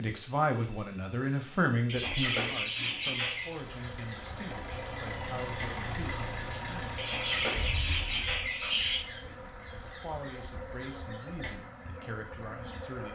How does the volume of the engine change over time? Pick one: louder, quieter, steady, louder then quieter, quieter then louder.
louder then quieter.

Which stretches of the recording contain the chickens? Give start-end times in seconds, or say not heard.
1.9-3.6, 7.0-9.0.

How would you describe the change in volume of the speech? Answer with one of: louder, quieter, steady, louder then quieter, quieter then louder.
quieter.